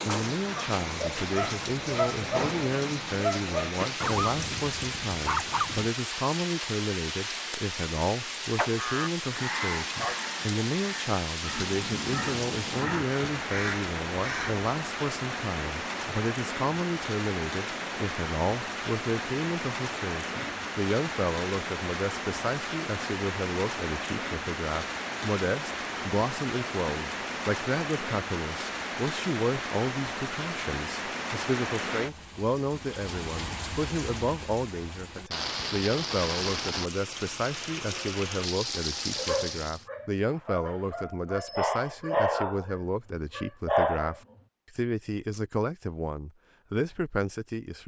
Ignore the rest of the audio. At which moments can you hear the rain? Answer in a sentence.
The rain can be heard from 0.0 to 39.9 s.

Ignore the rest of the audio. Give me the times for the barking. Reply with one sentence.
The barking can be heard from 0.6 to 5.9 s and from 39.1 to 44.2 s.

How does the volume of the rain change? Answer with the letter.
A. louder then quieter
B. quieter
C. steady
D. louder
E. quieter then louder
C.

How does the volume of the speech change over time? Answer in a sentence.
The loudness of the speech stays about the same.